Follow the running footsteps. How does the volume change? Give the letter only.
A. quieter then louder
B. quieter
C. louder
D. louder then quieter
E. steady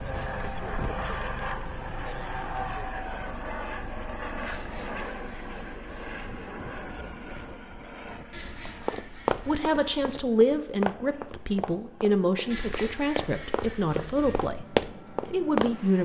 A.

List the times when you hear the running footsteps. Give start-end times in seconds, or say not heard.
8.7-15.8.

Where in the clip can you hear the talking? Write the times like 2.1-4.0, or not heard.
9.4-16.0.